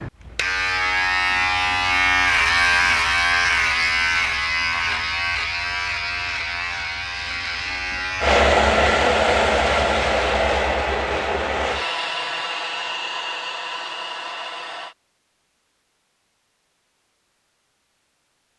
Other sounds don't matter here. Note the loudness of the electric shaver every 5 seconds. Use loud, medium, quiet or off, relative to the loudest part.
loud, medium, off, off.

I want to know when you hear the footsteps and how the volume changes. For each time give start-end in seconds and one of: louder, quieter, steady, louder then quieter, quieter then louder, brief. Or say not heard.
not heard.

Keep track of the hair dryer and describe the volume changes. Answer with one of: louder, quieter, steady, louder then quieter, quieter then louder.
quieter.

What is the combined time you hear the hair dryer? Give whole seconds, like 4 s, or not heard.
7 s.